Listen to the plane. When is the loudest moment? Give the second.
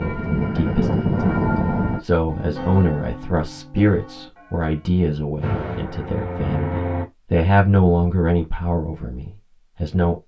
1 s.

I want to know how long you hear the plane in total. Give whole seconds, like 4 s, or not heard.
4 s.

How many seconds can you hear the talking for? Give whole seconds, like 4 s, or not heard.
10 s.